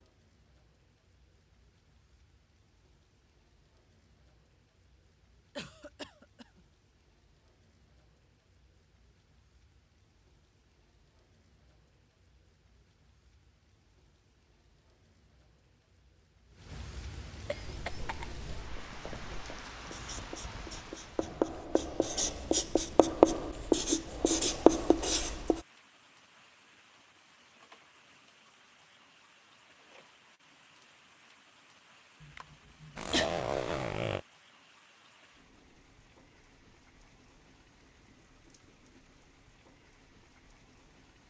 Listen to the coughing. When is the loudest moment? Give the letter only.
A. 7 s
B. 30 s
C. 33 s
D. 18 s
C.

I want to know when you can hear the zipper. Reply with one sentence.
The zipper can be heard from 33.0 to 34.2 s.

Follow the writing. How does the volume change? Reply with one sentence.
The volume of the writing goes up.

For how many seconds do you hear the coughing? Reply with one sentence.
The coughing can be heard for 3 seconds in total.